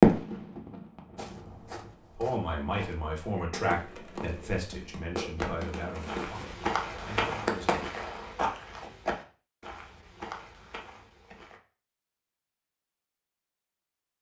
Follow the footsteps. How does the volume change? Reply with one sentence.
The volume of the footsteps goes up, then down.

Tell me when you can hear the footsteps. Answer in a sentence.
The footsteps can be heard from 1.1 to 11.6 s.